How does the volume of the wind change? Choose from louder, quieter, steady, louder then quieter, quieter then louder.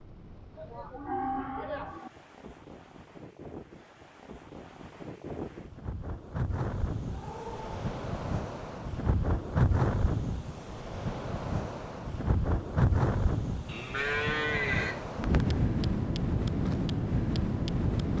louder.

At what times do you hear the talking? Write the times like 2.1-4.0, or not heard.
not heard.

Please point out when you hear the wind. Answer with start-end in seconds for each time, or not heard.
0.0-18.1.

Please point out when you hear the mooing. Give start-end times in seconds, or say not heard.
0.6-2.1, 7.0-7.8, 13.7-15.1.